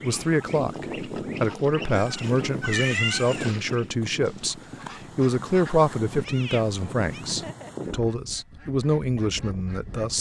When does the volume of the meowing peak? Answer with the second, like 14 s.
3 s.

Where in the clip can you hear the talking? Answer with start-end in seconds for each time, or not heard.
0.0-10.1.